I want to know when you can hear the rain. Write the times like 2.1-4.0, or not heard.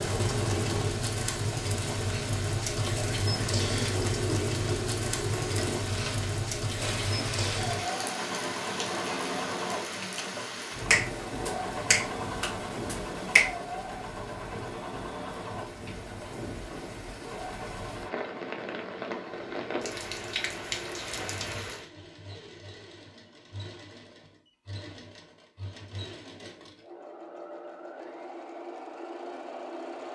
0.0-21.9.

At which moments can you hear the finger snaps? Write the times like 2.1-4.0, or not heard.
10.9-13.6.